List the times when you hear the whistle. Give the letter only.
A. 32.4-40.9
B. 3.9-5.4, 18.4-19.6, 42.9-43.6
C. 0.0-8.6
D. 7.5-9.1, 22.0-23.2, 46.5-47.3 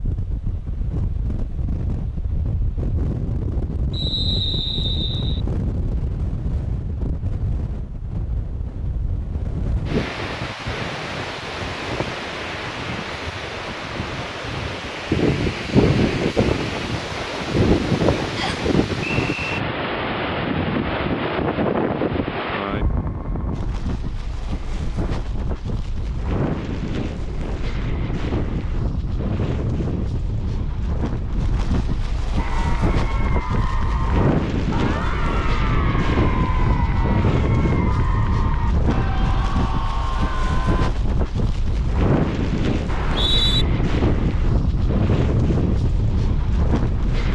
B.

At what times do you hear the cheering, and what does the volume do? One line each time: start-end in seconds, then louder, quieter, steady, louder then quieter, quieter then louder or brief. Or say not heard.
32.4-40.9 steady.